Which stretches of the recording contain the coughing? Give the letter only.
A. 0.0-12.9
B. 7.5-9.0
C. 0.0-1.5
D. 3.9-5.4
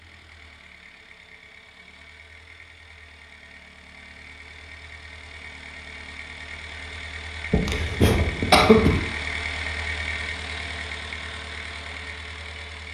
B.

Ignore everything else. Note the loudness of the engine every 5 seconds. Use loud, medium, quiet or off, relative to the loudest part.
quiet, loud, loud.